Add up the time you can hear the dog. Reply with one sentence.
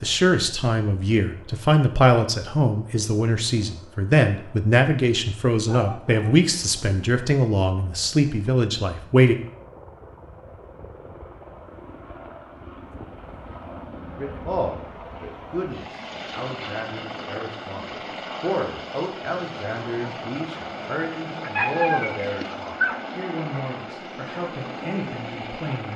You can hear the dog for 2 seconds altogether.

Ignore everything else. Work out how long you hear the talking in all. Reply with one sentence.
The talking can be heard for 21 seconds in total.